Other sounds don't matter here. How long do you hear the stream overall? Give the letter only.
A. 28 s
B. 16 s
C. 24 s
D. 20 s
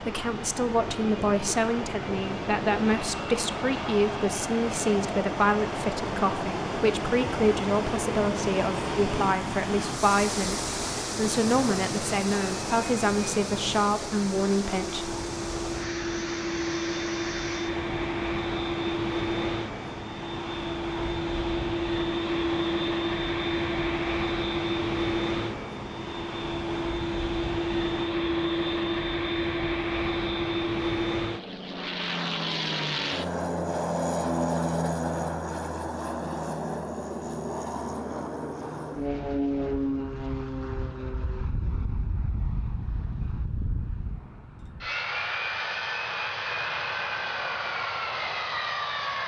A.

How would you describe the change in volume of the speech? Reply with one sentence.
The loudness of the speech stays about the same.